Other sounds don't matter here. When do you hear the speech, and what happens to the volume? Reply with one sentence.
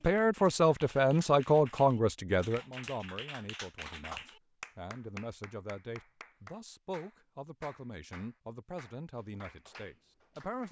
The speech can be heard from 0.0 to 10.6 s, getting quieter.